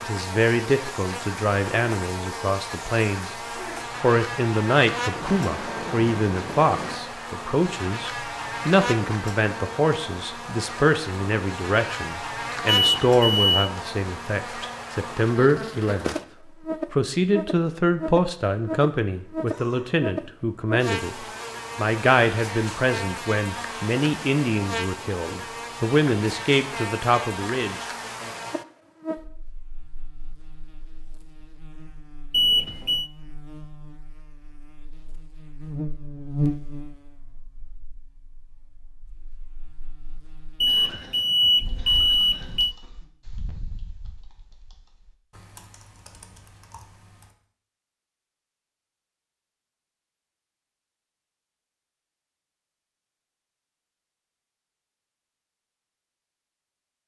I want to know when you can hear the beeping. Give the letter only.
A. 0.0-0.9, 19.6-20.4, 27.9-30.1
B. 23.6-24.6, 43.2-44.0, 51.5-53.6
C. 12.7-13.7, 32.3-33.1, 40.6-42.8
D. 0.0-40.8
C.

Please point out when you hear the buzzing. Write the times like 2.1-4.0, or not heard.
0.0-40.8.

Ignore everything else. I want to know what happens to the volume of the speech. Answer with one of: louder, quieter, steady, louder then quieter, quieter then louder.
steady.